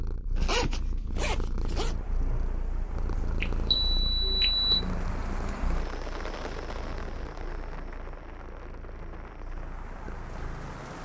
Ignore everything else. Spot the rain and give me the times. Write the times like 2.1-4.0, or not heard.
1.8-11.0.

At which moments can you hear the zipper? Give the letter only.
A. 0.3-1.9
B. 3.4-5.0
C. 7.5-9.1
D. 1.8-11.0
A.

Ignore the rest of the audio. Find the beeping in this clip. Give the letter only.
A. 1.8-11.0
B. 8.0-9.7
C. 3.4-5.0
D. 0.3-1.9
C.